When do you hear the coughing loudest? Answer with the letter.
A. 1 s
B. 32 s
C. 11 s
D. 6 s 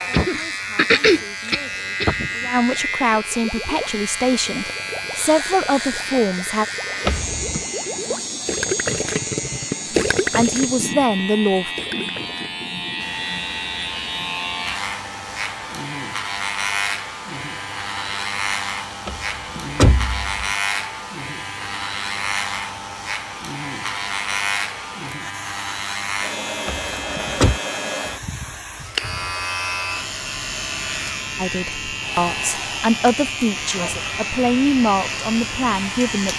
A.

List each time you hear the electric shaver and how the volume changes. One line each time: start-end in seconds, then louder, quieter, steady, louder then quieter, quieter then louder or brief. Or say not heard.
0.0-36.3 steady.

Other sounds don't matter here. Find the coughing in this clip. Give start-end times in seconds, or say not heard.
0.1-2.3.